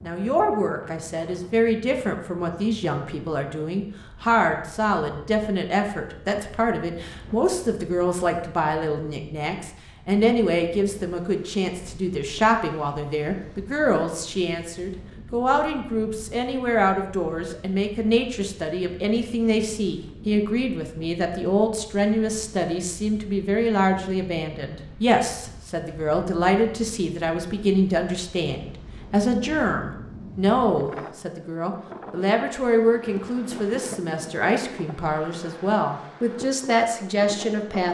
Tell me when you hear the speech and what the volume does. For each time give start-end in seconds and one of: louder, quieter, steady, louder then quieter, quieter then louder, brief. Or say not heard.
0.0-37.9 steady.